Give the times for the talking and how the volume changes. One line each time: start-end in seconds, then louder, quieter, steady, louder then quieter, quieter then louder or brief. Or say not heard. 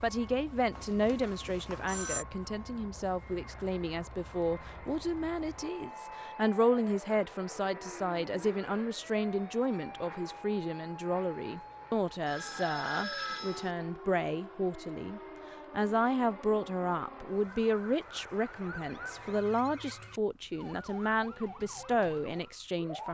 0.0-23.0 steady.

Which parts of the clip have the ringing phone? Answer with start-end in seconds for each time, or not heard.
0.8-2.2, 12.2-13.8, 19.1-20.2.